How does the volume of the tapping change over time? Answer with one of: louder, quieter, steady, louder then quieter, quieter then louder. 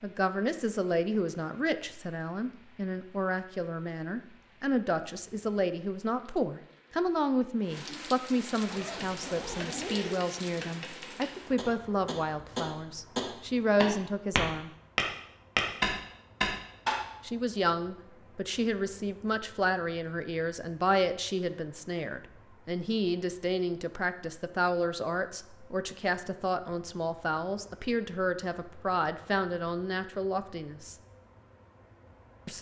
louder.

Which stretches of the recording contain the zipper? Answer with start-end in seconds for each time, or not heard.
8.7-10.2.